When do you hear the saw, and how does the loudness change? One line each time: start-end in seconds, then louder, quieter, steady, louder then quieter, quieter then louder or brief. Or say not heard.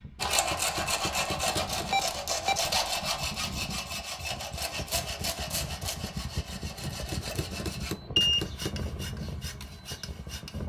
0.2-10.6 quieter.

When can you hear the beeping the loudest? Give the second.
8 s.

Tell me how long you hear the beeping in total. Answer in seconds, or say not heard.
2 s.